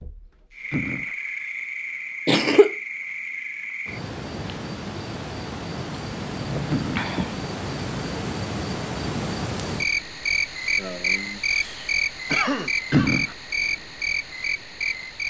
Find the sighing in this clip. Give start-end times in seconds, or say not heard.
0.7-1.1, 6.7-7.1, 12.9-13.3.